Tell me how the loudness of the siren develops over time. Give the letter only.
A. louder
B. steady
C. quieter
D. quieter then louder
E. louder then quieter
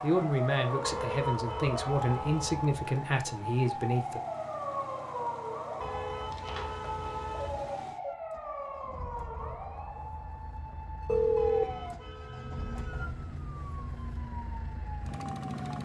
C.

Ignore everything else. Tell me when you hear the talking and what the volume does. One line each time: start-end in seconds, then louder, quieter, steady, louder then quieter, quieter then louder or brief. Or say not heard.
0.0-4.2 steady.